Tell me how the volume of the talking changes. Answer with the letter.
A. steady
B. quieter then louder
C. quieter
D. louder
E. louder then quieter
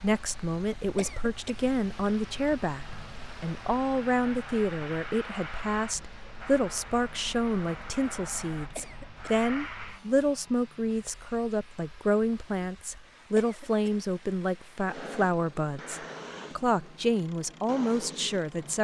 A.